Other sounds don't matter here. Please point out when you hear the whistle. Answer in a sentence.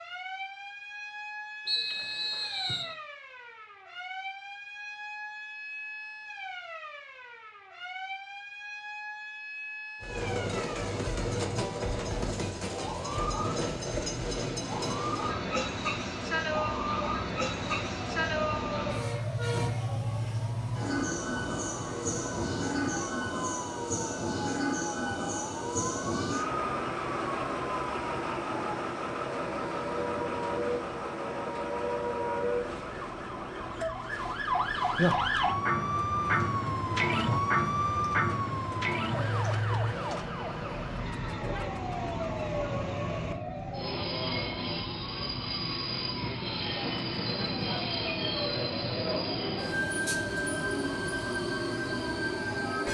You can hear the whistle from 1.6 to 3.0 s.